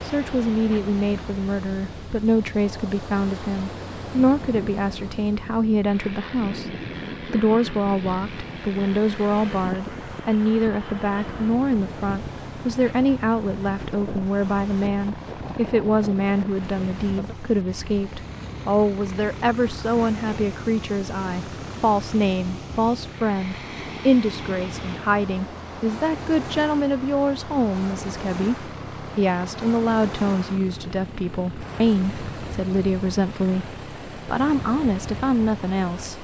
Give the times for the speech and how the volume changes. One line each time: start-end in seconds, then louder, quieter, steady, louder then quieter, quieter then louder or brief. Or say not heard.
0.0-36.1 steady.